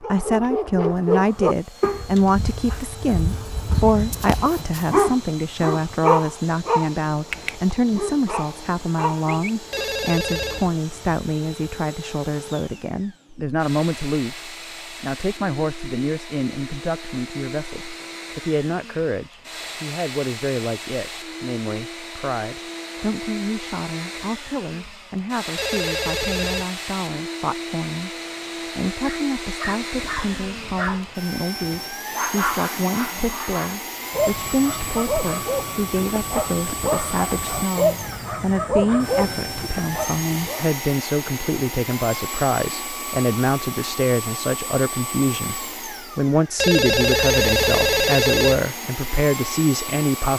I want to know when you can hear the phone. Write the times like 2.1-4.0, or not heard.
9.7-10.7, 25.6-26.6, 46.5-48.6.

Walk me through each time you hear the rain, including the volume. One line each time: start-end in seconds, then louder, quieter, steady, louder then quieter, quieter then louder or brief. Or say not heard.
not heard.